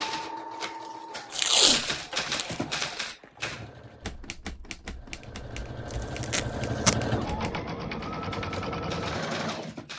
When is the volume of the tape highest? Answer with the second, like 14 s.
2 s.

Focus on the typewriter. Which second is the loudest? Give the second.
2 s.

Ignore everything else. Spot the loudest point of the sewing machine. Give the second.
7 s.